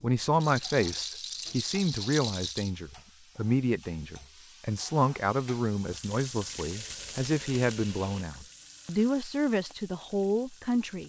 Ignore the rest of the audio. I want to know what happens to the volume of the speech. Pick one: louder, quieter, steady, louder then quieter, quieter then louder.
steady.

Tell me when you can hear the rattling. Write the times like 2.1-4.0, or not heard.
0.4-2.7, 6.8-7.8.